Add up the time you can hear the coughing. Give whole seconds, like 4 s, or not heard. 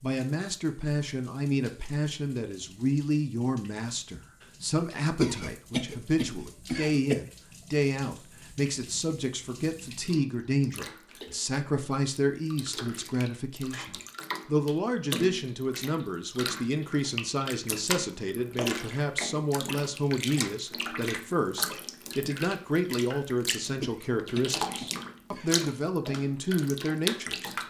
4 s.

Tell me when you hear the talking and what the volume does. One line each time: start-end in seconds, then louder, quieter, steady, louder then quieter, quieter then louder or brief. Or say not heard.
0.0-27.6 steady.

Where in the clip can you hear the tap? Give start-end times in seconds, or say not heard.
0.0-27.6.